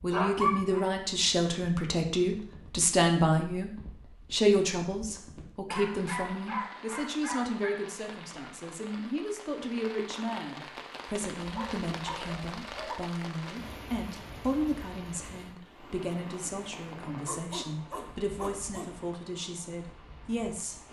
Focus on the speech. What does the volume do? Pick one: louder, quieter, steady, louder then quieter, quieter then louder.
quieter.